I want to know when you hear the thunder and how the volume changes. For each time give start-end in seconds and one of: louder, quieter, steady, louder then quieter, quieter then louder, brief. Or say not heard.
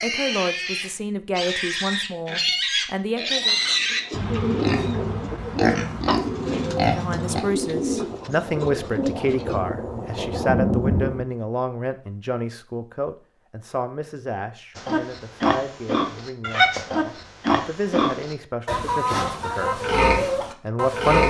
7.1-11.2 louder.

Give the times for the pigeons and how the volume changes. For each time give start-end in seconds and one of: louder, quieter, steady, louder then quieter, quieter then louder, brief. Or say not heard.
3.2-9.6 steady.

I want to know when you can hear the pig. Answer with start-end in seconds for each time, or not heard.
0.0-7.5, 14.8-21.2.